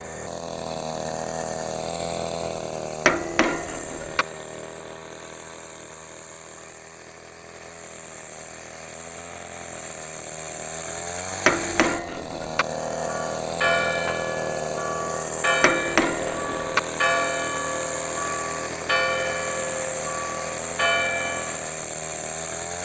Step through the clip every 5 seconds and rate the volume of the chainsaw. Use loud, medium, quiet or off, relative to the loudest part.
loud, medium, loud, loud, loud.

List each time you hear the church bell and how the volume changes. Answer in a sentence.
The church bell can be heard from 12.7 to 21.8 s, at a steady volume.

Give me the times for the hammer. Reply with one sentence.
You can hear the hammer from 3.0 to 4.2 s, from 11.4 to 12.7 s and from 15.6 to 16.8 s.